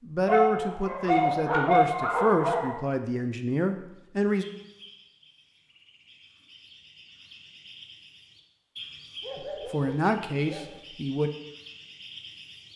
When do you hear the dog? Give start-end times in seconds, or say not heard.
0.2-2.8, 9.2-10.7.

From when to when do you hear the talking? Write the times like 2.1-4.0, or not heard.
0.0-4.5, 9.3-11.3.